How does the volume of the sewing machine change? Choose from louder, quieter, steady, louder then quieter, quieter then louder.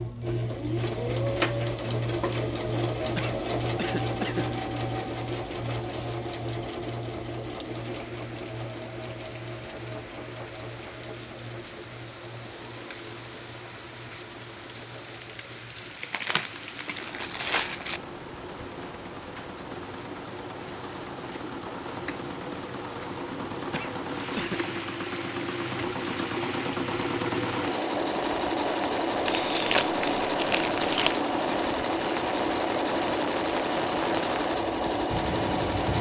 quieter then louder.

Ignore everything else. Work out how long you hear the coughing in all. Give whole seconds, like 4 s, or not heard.
2 s.